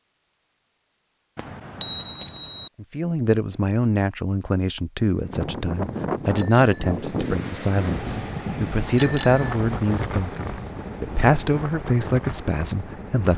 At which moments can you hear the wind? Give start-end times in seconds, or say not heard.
5.0-13.3.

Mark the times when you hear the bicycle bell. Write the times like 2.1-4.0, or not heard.
1.4-2.7, 6.3-7.0, 8.9-9.6.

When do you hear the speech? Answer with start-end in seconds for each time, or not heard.
2.8-13.3.